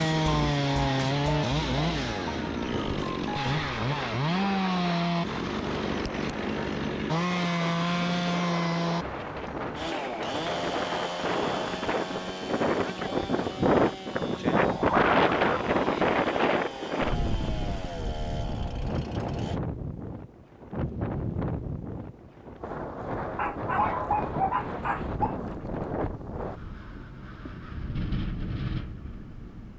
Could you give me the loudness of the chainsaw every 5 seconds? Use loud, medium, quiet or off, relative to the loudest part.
loud, loud, medium, quiet, off, off.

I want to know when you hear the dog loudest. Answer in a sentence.
The loudest moment of the dog is at 24 seconds.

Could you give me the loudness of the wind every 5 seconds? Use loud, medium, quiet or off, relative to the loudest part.
medium, medium, loud, loud, medium, medium.